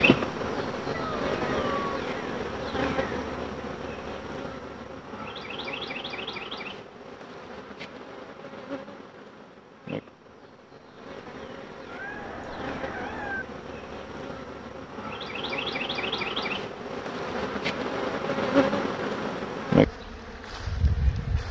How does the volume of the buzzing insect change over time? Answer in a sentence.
The loudness of the buzzing insect goes down, then up.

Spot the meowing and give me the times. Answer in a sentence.
You can hear the meowing from 0.9 to 1.9 s and from 11.8 to 13.4 s.